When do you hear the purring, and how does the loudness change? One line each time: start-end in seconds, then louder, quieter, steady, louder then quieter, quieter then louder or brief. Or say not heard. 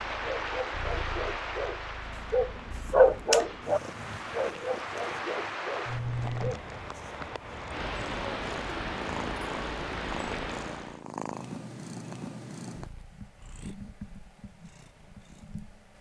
0.0-15.9 louder then quieter.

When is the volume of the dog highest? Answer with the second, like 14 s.
3 s.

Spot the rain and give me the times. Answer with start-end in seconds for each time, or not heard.
0.0-11.1.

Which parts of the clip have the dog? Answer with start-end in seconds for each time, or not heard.
0.1-6.6.